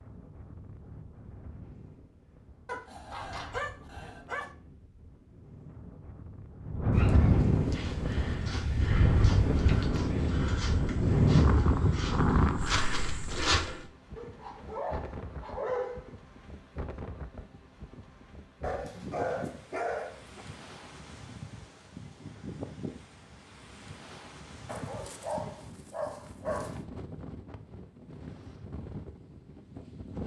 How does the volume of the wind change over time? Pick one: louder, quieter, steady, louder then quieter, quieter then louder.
louder then quieter.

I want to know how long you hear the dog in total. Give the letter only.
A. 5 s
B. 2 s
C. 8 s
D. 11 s
D.